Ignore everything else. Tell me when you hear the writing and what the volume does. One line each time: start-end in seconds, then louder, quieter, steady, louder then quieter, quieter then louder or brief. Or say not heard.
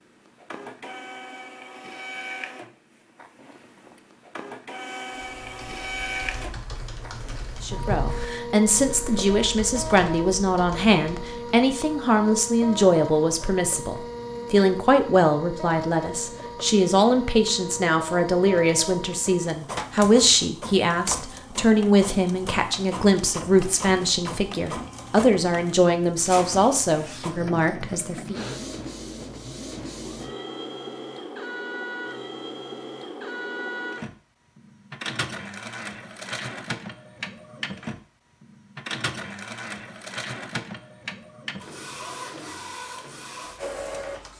not heard.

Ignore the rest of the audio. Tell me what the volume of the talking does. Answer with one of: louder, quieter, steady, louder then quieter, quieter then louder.
steady.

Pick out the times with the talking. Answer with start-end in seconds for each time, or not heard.
7.6-28.4.